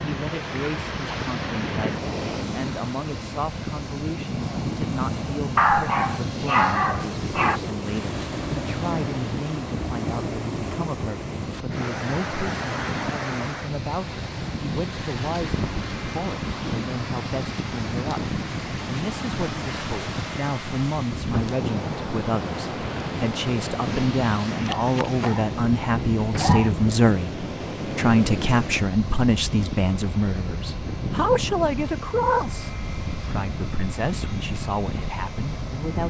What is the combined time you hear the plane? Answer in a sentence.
The plane can be heard for 36 seconds in total.